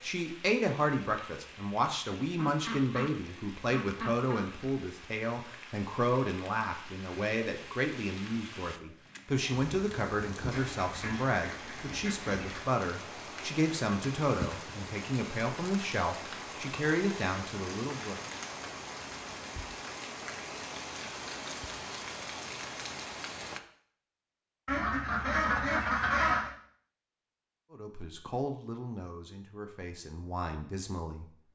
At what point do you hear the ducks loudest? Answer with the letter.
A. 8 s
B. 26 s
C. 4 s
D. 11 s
B.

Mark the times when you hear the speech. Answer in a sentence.
The speech can be heard from 0.0 to 18.1 s and from 27.7 to 31.2 s.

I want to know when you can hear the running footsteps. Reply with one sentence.
The running footsteps can't be heard in this clip.